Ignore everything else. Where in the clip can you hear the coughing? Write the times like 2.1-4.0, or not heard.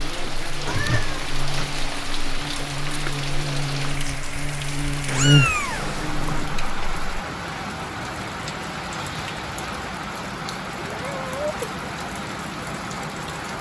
not heard.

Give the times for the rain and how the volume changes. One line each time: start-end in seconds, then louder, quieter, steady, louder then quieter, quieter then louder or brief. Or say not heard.
0.0-13.5 steady.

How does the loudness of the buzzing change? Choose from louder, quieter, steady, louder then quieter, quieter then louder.
louder.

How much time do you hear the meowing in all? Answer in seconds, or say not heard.
4 s.